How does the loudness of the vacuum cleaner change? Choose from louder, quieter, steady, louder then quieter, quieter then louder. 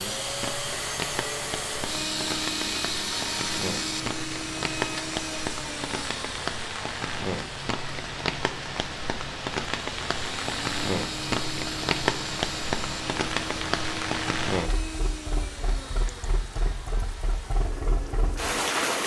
quieter.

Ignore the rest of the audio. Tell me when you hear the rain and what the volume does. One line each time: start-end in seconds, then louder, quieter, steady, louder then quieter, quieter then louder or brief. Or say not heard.
0.0-19.0 louder then quieter.